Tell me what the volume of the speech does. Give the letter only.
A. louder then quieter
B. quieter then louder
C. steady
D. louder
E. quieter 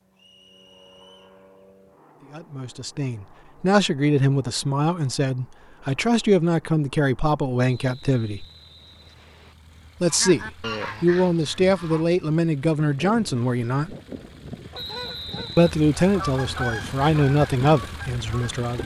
C.